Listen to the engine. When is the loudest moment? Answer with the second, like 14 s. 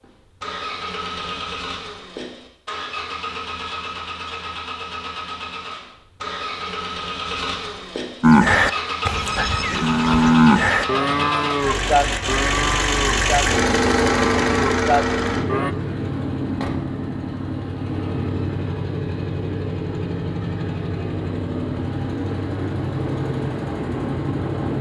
14 s.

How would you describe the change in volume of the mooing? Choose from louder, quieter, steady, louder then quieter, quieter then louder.
louder then quieter.